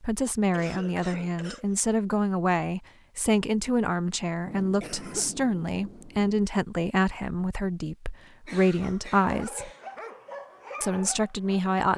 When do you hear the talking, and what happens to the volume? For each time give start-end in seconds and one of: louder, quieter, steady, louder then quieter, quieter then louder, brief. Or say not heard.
0.0-9.7 steady
10.8-11.9 brief.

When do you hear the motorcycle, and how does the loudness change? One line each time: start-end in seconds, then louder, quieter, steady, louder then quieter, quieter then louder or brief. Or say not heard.
not heard.